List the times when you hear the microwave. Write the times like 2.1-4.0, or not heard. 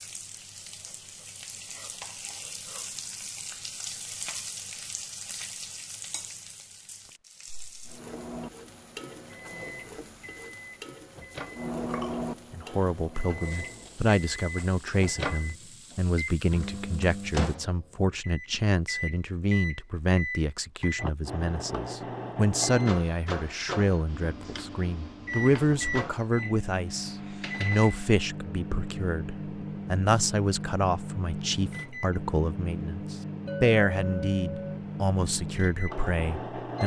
7.8-36.8.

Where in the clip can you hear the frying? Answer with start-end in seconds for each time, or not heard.
0.0-17.6.